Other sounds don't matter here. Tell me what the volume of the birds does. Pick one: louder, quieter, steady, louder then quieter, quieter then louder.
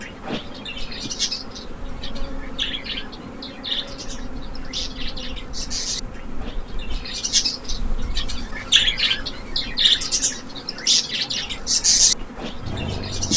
louder.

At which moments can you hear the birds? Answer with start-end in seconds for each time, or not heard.
0.0-13.3.